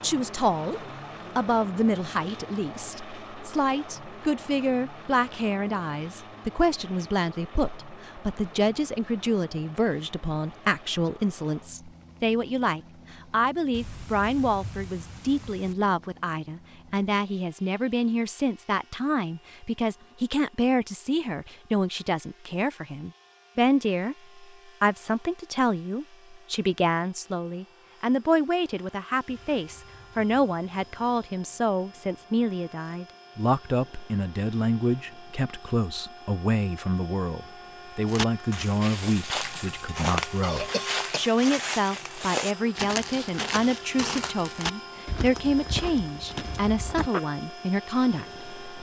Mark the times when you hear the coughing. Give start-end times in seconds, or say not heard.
40.4-41.3.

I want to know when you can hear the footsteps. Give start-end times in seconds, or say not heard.
38.0-47.2.